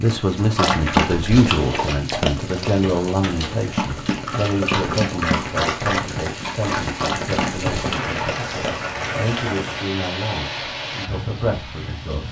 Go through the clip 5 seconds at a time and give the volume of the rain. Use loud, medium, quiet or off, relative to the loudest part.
medium, loud, loud.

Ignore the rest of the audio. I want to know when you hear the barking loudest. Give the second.
1 s.